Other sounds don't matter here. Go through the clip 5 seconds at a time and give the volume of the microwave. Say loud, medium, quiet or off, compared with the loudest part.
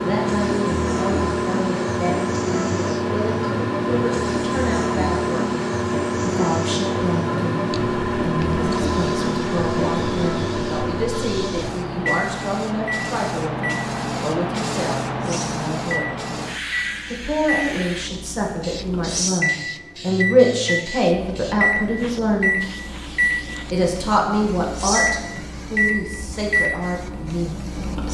loud, loud, loud, medium, loud, loud.